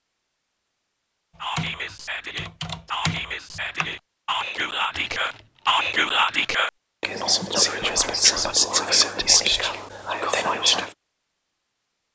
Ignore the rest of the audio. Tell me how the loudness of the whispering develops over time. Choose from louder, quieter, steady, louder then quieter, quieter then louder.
louder.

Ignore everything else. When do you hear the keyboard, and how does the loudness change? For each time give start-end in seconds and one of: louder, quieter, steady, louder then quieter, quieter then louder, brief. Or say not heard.
1.4-6.5 louder then quieter.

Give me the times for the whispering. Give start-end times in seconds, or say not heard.
1.4-10.9.